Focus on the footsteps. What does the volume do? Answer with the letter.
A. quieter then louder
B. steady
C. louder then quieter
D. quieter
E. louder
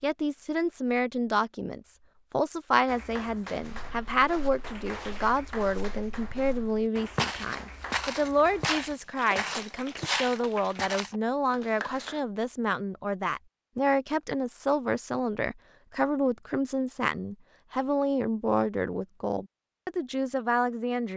E.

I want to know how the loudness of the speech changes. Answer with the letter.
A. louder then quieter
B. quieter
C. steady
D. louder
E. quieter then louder
C.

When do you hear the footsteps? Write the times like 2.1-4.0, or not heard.
3.6-11.1.